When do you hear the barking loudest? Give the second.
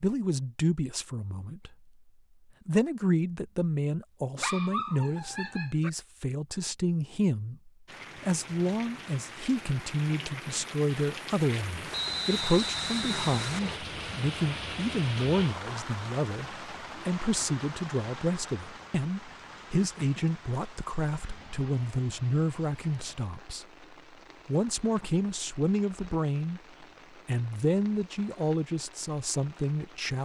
5 s.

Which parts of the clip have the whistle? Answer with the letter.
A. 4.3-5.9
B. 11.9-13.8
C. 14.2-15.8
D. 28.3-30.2
B.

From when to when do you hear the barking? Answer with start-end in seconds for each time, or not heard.
4.3-5.9.